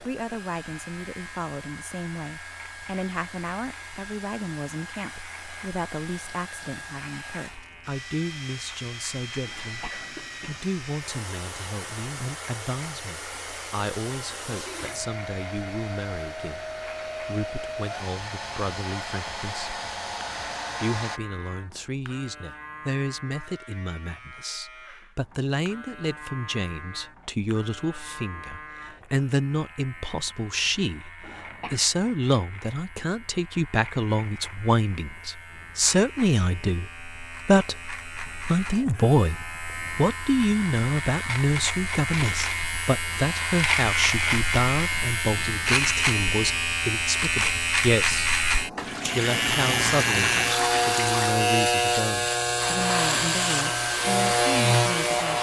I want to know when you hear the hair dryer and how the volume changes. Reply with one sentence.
You can hear the hair dryer from 0.0 to 21.2 s, getting louder; and briefly from 52.6 to 55.3 s.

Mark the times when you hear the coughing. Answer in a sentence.
You can hear the coughing from 9.4 to 10.7 s and from 31.2 to 31.9 s.